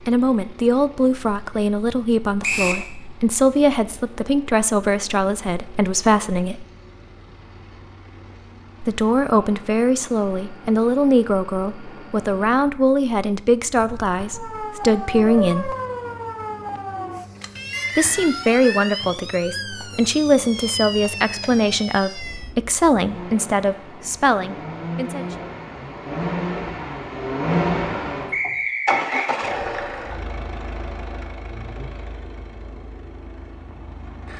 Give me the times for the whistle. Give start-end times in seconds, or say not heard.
2.4-2.9, 17.7-18.9, 28.3-29.3.